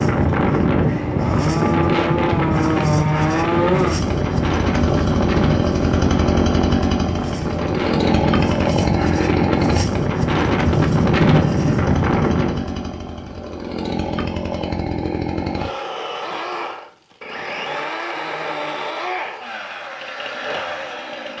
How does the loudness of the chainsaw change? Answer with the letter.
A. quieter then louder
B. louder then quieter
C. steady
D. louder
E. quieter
E.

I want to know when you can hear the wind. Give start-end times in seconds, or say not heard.
0.0-12.6.